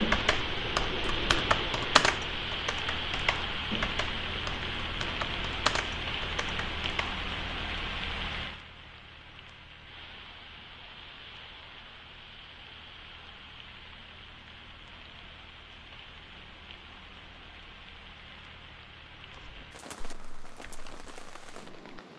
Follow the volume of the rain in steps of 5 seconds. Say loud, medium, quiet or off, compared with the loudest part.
loud, loud, quiet, quiet, quiet.